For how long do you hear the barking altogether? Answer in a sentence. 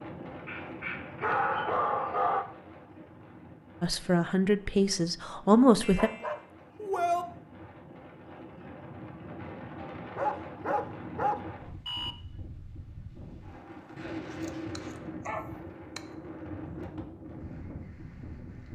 The barking can be heard for 7 seconds in total.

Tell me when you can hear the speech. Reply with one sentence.
The speech can be heard from 3.8 to 6.1 s.